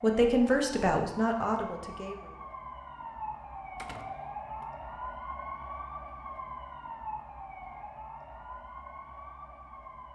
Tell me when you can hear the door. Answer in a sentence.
The door can be heard from 3.8 to 4.7 s.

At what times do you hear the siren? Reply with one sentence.
The siren can be heard from 0.0 to 10.1 s.